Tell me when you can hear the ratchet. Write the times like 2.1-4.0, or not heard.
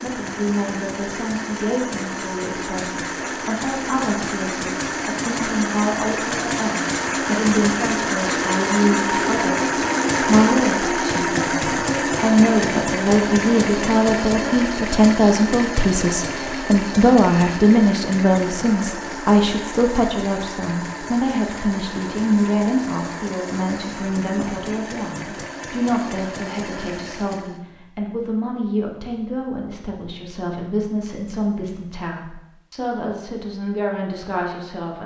not heard.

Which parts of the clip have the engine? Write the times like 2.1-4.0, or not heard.
0.0-27.6.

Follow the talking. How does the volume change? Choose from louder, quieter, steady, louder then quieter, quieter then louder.
louder then quieter.